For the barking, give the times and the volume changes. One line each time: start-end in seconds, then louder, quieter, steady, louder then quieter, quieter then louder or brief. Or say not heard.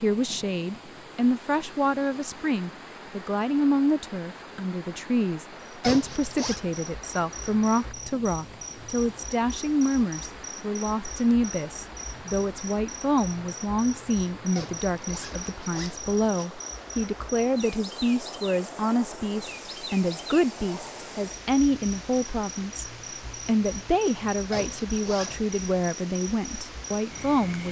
not heard.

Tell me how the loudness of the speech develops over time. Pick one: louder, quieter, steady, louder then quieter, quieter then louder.
steady.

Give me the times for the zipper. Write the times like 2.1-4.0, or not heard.
5.8-6.6, 14.6-16.4, 24.5-25.4.